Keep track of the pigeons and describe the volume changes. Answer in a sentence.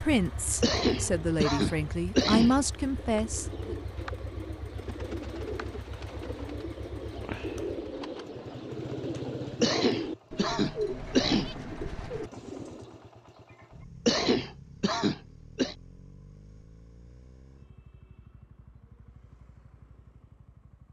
The volume of the pigeons goes up.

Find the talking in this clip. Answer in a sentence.
You can hear the talking from 0.0 to 3.8 s.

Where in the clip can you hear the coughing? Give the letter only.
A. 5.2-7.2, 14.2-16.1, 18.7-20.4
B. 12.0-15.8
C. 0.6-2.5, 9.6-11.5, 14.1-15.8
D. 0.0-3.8
C.